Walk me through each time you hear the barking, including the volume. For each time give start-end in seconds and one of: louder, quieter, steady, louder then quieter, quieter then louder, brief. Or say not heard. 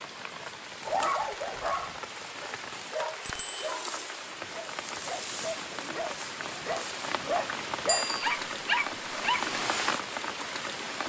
0.8-9.4 quieter then louder.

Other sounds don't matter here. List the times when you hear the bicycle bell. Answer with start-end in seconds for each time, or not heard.
3.2-3.8, 7.8-8.3.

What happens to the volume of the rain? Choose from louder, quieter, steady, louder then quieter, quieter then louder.
louder.